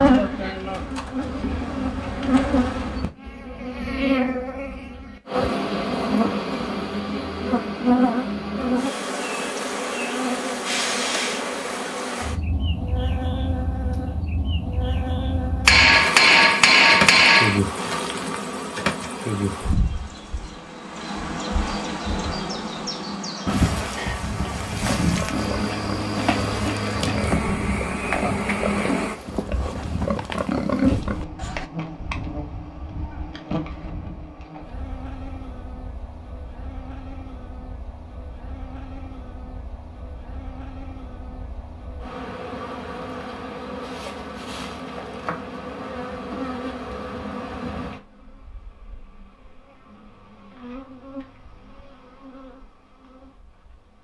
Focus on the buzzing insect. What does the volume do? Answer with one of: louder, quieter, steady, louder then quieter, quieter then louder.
quieter.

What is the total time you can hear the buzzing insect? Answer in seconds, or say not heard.
54 s.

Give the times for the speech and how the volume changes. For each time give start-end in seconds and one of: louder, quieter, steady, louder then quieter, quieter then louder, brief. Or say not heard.
not heard.